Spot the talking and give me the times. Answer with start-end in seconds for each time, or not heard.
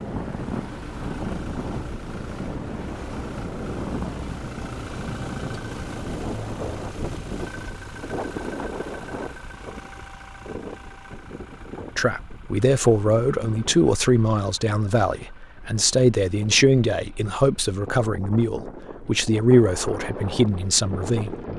11.9-21.4.